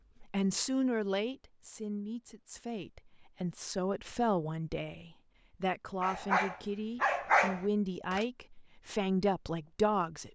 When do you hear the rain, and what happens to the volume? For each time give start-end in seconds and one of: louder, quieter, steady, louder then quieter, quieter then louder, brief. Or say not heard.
not heard.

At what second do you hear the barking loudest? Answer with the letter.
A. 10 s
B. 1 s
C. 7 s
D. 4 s
C.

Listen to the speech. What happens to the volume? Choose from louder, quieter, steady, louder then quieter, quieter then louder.
steady.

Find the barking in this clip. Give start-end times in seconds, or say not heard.
6.0-8.2.